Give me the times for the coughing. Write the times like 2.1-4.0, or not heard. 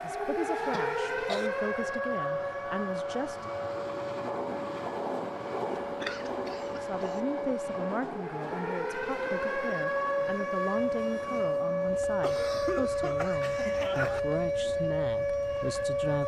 0.7-1.5, 5.8-7.2, 12.2-14.2.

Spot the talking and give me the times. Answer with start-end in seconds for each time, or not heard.
0.0-3.5, 6.7-16.2.